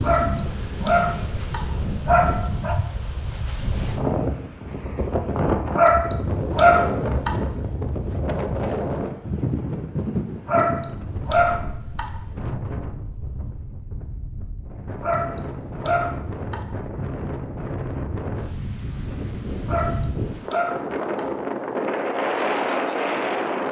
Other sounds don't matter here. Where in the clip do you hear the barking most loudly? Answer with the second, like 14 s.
7 s.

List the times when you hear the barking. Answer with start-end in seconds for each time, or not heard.
0.0-2.8, 5.8-7.3, 10.4-12.2, 15.0-16.8, 19.6-21.4.